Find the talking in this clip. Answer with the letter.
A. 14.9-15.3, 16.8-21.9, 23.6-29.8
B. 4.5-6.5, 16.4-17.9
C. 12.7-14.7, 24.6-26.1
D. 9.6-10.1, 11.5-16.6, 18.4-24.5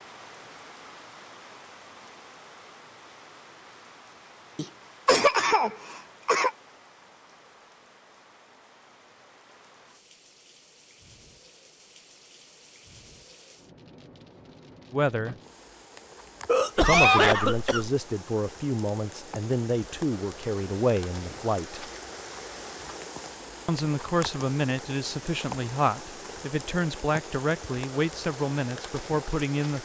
A.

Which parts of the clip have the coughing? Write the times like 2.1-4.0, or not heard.
4.5-6.5, 16.4-17.9.